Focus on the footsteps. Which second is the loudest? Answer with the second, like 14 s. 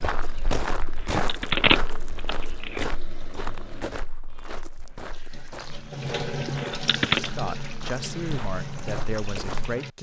1 s.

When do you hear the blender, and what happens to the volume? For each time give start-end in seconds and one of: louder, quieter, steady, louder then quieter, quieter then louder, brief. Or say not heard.
not heard.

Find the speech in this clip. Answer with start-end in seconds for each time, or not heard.
7.2-9.9.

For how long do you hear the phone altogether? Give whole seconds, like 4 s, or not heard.
3 s.